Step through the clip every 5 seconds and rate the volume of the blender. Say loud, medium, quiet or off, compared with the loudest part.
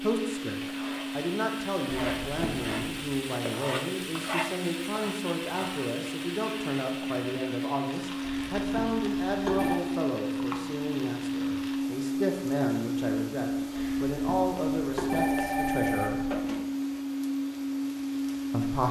medium, loud, loud, loud.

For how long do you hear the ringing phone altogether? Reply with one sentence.
You can hear the ringing phone for 5 seconds altogether.